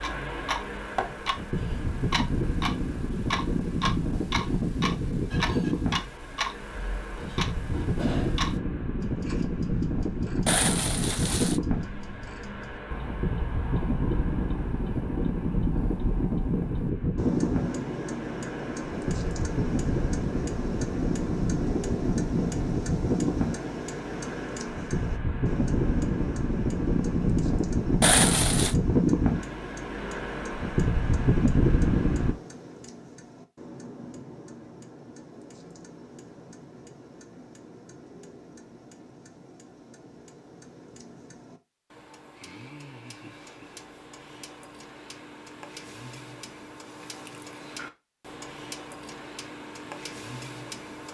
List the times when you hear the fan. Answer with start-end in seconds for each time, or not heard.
0.0-32.4.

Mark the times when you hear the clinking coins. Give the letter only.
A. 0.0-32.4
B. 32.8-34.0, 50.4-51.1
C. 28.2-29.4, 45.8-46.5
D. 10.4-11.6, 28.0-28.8
D.